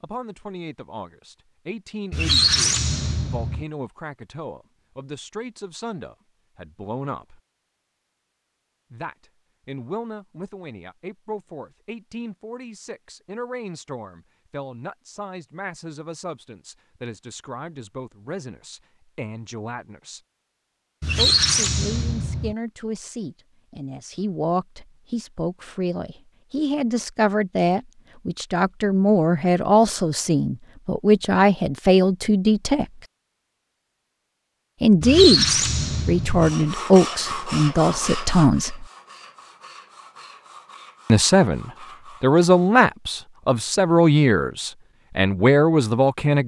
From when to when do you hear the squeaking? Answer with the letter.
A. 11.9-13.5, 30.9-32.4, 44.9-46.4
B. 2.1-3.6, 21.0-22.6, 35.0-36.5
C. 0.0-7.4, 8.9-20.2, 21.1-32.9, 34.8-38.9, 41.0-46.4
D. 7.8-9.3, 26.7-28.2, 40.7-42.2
B.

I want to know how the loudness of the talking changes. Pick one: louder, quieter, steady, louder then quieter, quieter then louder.
louder.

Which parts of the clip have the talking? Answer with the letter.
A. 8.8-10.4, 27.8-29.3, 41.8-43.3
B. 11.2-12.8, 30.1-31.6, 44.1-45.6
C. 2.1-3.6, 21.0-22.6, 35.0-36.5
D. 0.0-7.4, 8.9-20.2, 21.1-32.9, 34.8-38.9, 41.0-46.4
D.